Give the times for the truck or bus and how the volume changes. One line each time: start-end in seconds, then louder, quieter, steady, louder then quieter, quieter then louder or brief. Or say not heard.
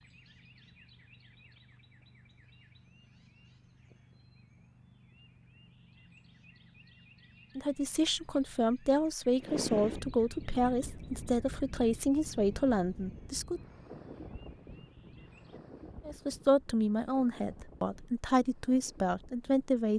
not heard.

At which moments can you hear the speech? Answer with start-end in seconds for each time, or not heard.
7.5-13.6, 16.1-19.9.